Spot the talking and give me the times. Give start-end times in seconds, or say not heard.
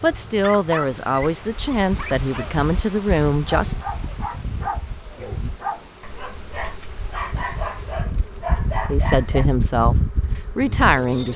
0.0-3.8, 8.8-11.3.